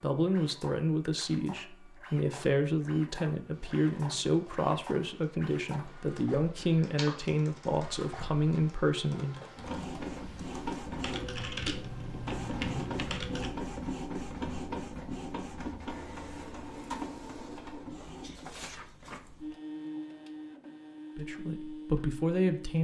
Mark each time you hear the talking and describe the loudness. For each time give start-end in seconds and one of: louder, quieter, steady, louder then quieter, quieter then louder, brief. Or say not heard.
0.0-9.4 steady
21.1-22.7 brief.